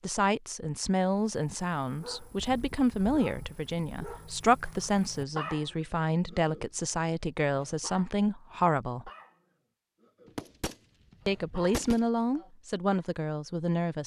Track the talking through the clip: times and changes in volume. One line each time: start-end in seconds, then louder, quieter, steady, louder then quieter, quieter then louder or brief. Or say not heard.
0.0-9.1 steady
11.2-14.0 brief.